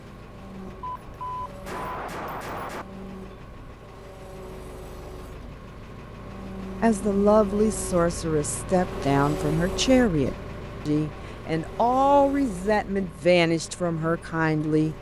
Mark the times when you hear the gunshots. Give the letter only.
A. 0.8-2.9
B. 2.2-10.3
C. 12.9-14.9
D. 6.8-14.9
A.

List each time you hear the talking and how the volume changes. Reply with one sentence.
The talking can be heard from 6.8 to 14.9 s, at a steady volume.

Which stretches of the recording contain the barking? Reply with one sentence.
You can't hear the barking here.